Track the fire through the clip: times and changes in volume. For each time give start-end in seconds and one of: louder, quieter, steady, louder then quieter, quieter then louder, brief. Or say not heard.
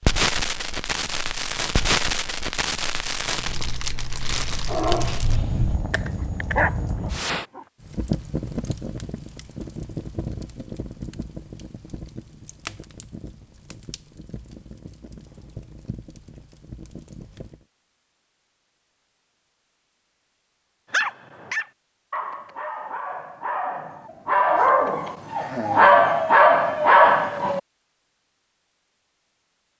0.0-17.6 quieter.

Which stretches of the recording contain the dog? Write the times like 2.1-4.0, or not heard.
4.7-7.7, 20.9-27.6.